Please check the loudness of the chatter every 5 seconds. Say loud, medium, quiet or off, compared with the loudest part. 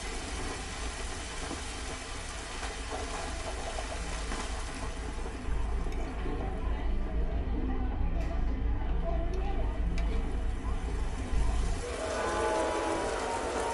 quiet, medium, loud.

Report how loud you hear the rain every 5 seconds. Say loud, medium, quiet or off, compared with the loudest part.
loud, medium, loud.